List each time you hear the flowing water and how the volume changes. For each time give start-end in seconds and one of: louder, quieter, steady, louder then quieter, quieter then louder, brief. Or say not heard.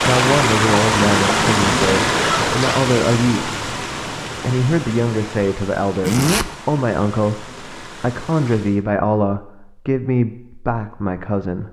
0.0-8.8 quieter.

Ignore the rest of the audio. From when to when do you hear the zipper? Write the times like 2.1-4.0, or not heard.
2.0-2.6, 6.0-6.5.